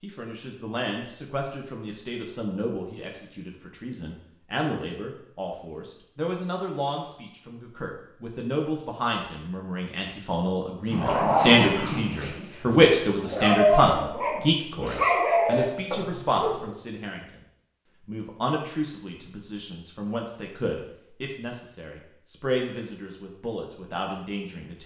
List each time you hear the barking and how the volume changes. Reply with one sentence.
You can hear the barking from 10.9 to 16.7 s, getting quieter then louder.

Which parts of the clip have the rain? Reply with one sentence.
You can't hear the rain here.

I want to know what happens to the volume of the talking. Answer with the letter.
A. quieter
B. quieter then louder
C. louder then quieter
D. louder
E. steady
C.